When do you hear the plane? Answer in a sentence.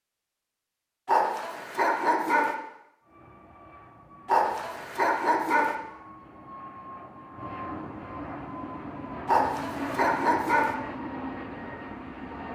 The plane can be heard from 3.0 to 12.5 s.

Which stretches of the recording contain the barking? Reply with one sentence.
You can hear the barking from 1.1 to 2.5 s, from 4.2 to 5.8 s and from 9.2 to 10.8 s.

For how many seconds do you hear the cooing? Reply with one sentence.
The cooing can't be heard in this clip.